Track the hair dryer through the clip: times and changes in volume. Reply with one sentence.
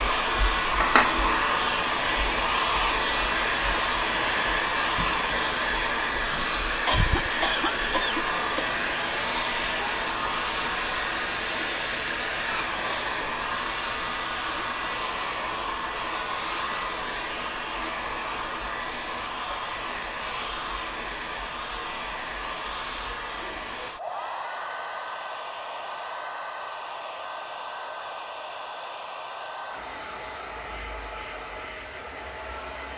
The hair dryer can be heard from 0.0 to 32.9 s, getting quieter.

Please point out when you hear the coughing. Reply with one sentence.
The coughing can be heard from 6.8 to 8.8 s.